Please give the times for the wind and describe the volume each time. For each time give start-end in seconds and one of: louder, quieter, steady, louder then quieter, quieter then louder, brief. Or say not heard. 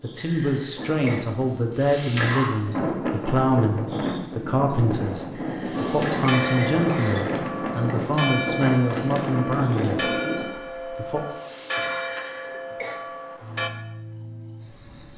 0.0-10.4 louder.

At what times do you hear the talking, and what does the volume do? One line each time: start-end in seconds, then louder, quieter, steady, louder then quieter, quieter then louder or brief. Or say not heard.
0.0-11.2 steady.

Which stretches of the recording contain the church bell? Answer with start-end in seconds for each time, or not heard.
5.8-13.7.